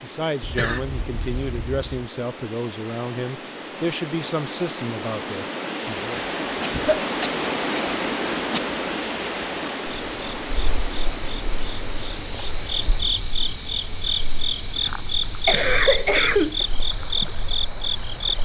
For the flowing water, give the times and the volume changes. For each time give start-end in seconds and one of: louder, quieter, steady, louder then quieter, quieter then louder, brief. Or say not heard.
0.0-18.4 louder then quieter.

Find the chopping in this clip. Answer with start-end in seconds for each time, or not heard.
not heard.